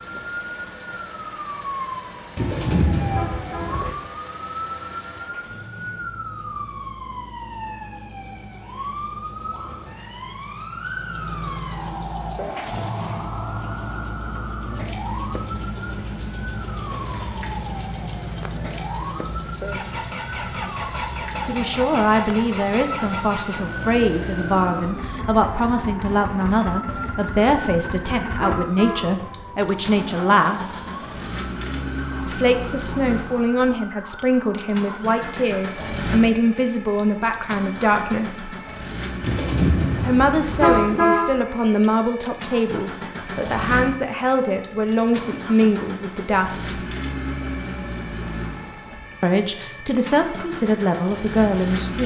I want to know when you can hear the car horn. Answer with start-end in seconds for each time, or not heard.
3.0-3.8, 28.2-29.1, 40.4-41.2.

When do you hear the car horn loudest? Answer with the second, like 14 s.
41 s.